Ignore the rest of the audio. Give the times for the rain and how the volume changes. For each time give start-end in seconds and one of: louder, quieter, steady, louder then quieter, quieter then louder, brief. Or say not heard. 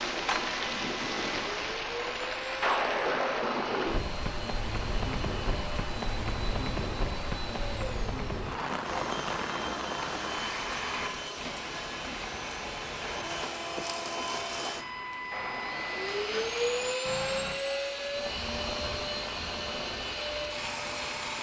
0.0-21.3 quieter.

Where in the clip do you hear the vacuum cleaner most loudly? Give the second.
17 s.